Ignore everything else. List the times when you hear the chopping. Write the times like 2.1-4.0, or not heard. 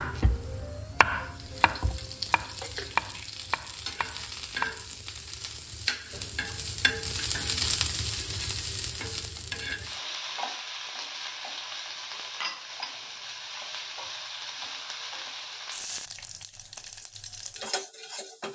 0.0-4.8.